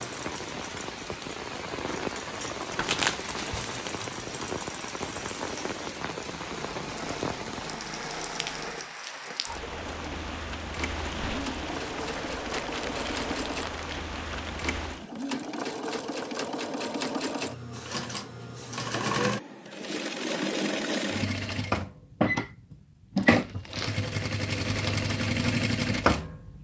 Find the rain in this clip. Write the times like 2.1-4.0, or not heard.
0.0-15.1.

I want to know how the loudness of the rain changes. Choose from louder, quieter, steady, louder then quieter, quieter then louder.
steady.